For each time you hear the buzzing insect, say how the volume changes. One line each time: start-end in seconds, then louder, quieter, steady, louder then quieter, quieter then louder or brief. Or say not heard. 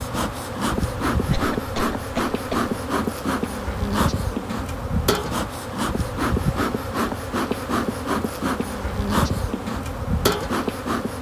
0.0-11.1 steady.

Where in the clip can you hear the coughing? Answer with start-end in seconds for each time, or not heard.
1.3-2.8.